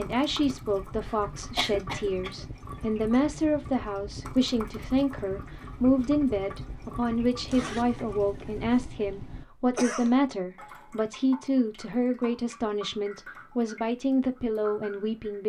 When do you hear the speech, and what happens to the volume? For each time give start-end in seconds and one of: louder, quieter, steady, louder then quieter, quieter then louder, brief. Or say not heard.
0.0-15.4 steady.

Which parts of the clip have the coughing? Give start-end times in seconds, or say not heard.
1.0-2.5, 9.8-10.2.